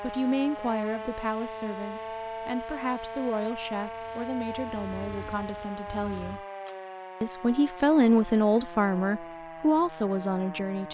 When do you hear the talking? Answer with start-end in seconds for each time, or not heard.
0.0-6.4, 7.2-10.8.